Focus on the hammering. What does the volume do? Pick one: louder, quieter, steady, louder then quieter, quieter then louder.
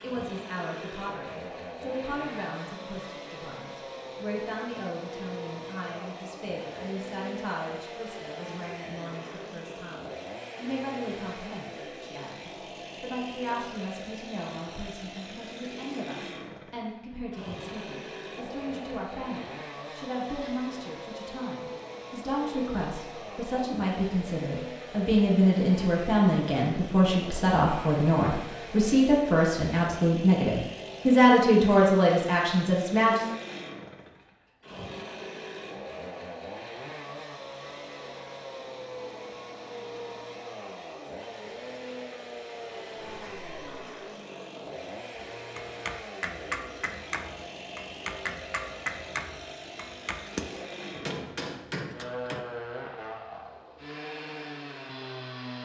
steady.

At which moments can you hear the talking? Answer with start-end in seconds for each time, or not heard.
0.0-33.2.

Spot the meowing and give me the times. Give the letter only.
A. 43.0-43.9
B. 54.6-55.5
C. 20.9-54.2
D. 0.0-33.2
A.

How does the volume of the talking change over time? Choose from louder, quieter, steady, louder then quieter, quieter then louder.
louder.